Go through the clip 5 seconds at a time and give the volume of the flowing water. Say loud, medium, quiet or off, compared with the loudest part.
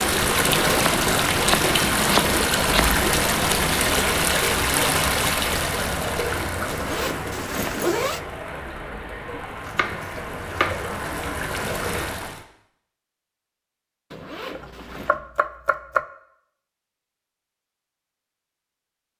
loud, medium, medium, off.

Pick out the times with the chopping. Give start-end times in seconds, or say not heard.
0.8-2.8, 9.7-10.8, 14.6-16.1.